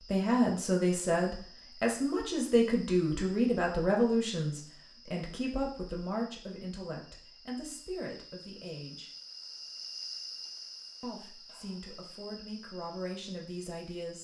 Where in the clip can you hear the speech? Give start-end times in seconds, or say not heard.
0.1-9.1, 11.0-14.1.